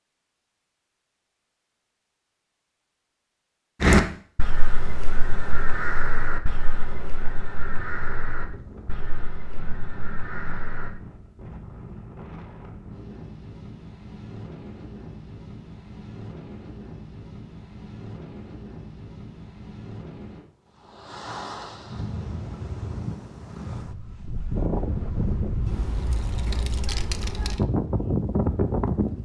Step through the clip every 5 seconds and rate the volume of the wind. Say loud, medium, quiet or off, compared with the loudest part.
off, quiet, quiet, quiet, medium, loud.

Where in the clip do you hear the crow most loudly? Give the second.
4 s.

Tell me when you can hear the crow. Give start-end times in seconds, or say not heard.
3.8-10.9.